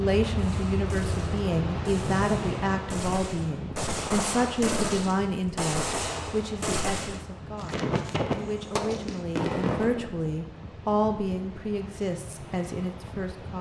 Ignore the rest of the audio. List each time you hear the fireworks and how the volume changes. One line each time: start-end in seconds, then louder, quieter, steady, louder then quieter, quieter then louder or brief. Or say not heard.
0.4-10.1 louder.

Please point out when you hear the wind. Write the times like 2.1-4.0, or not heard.
0.0-13.5.